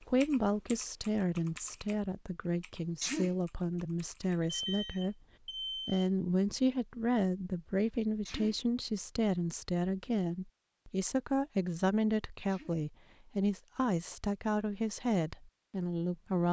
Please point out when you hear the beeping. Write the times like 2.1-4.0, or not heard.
4.4-6.0.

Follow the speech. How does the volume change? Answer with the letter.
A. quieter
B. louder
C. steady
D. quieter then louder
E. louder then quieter
C.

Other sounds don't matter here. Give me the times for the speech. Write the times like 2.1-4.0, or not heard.
0.0-5.2, 5.8-16.4.